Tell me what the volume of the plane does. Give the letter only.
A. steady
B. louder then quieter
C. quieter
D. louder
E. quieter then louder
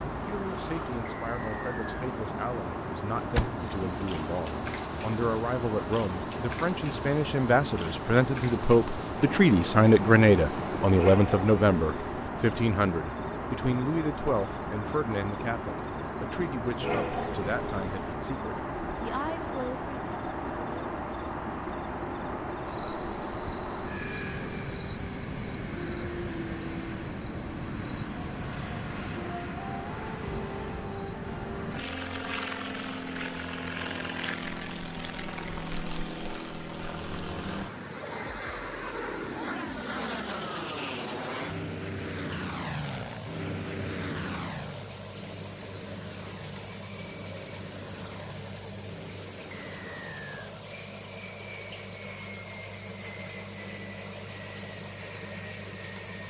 C.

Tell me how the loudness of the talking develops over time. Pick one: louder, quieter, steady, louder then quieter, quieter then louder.
louder then quieter.